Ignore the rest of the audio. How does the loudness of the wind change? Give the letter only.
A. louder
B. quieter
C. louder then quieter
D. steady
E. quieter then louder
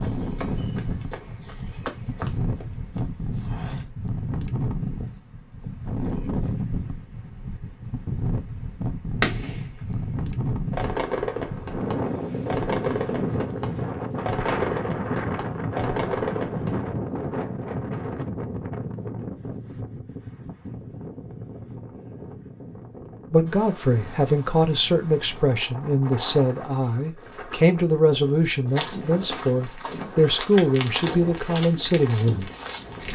B.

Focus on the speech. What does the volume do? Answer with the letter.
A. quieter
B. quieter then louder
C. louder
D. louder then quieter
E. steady
E.